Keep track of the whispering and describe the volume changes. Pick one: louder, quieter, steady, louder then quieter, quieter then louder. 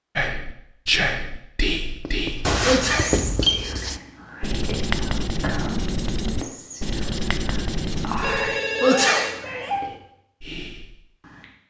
quieter.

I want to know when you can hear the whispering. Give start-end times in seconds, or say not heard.
0.1-11.4.